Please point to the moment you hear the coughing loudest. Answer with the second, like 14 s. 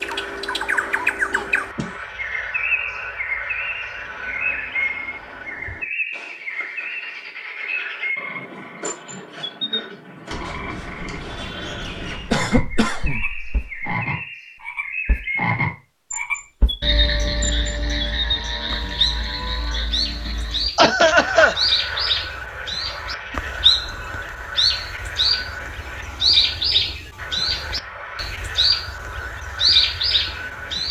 21 s.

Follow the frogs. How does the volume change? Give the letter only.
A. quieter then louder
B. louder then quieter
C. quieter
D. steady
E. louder
B.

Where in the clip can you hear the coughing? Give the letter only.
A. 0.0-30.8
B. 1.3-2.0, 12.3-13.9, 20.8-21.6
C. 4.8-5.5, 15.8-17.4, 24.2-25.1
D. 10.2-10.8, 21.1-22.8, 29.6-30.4
B.